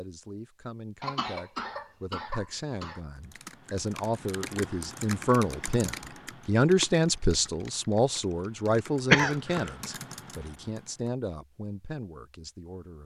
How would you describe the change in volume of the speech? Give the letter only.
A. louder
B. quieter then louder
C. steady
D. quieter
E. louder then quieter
E.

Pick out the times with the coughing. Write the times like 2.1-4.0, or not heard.
1.0-3.0, 9.1-9.7.